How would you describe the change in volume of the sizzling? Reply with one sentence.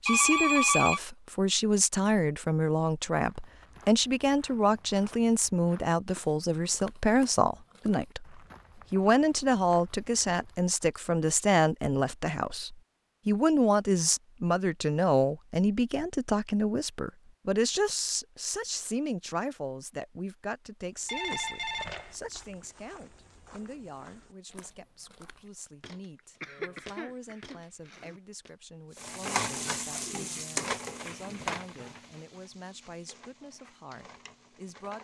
The loudness of the sizzling goes down.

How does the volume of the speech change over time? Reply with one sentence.
The volume of the speech goes down.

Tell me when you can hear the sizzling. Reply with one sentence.
You can hear the sizzling from 28.9 to 34.9 s.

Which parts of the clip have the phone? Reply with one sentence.
You can hear the phone from 0.1 to 1.0 s and from 21.1 to 22.1 s.